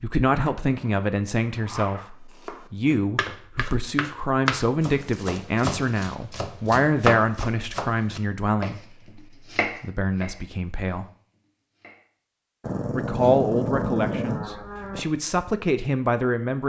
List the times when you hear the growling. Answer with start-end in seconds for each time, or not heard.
0.3-2.1, 12.6-15.1.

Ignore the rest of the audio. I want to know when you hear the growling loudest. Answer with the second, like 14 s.
14 s.